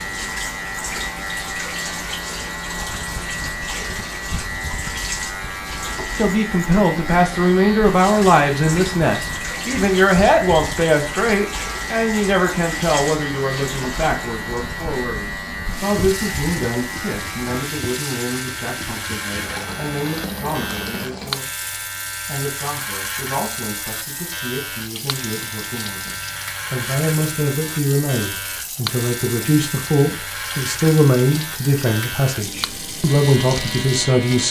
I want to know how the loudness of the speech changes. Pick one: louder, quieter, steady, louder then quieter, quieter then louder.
quieter then louder.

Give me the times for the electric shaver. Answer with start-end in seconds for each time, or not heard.
0.0-34.4.